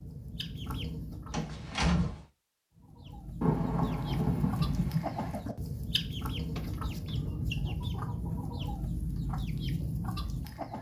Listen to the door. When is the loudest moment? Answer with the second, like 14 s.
2 s.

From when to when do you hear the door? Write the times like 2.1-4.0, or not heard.
1.3-2.2, 6.3-7.2.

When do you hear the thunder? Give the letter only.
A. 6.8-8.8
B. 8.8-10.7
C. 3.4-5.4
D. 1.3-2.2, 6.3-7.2
C.